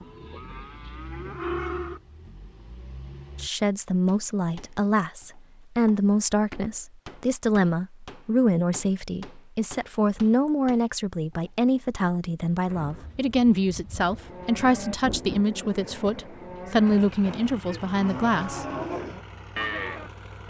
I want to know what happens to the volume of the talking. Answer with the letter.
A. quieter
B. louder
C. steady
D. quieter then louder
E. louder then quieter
C.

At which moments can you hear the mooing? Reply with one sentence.
You can hear the mooing from 0.0 to 2.3 s and from 13.9 to 20.4 s.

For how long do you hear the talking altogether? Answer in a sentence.
You can hear the talking for 15 seconds altogether.